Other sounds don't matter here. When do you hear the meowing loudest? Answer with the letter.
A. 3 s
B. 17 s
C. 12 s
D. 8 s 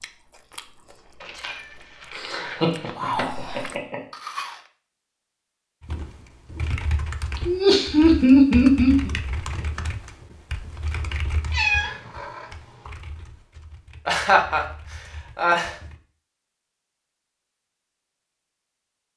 C.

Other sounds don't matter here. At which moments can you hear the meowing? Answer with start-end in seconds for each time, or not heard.
1.2-3.6, 11.5-12.9.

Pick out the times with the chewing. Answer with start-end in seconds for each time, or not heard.
0.0-4.6.